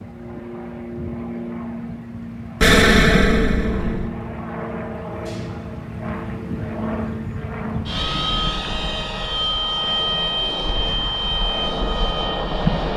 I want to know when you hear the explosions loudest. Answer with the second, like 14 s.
3 s.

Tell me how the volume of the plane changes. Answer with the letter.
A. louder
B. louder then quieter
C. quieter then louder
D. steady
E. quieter
A.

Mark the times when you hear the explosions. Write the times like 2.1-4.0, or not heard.
2.6-4.1.